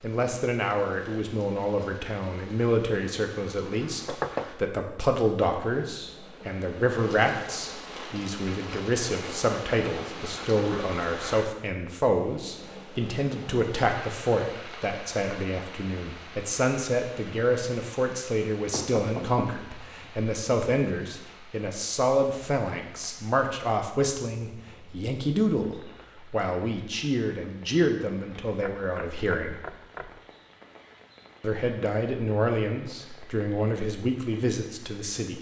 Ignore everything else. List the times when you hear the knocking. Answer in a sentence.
You can hear the knocking from 4.0 to 4.5 s, from 18.7 to 20.1 s and from 28.6 to 30.2 s.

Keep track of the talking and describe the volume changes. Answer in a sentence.
The volume of the talking stays about the same.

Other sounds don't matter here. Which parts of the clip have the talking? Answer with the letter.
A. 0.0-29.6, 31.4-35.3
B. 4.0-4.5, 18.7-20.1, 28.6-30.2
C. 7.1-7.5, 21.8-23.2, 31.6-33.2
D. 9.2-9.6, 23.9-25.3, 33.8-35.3
A.